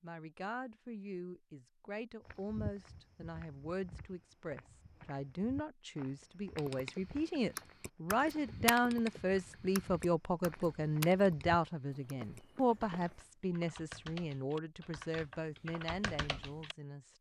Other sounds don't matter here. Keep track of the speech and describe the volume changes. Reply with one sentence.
The volume of the speech goes up, then down.